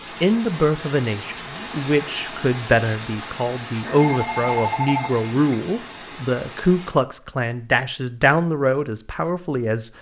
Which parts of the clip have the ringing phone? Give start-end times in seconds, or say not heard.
3.8-5.3.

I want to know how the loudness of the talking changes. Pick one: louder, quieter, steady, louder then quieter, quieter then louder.
steady.